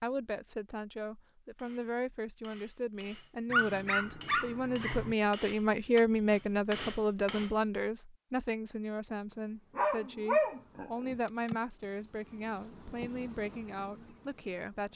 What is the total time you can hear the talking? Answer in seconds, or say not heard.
15 s.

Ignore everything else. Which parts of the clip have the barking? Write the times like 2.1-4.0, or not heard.
3.5-5.2, 9.8-11.2.